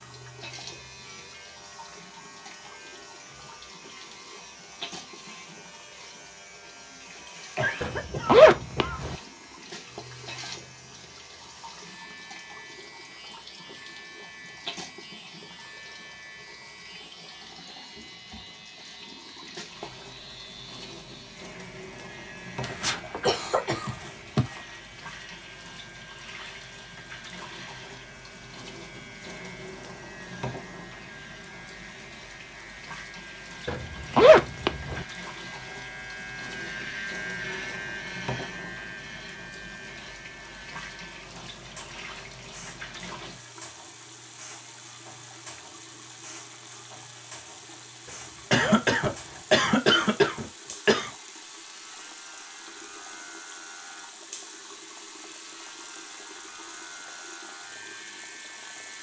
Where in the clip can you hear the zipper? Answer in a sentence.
The zipper can be heard from 7.8 to 9.2 s, from 33.6 to 35.0 s and from 48.0 to 49.5 s.